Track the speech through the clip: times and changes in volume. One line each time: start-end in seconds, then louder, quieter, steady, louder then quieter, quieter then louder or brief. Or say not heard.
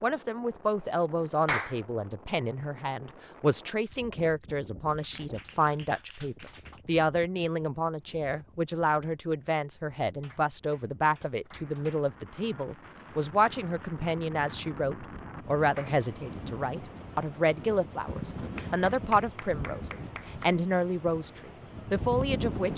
0.0-22.7 steady.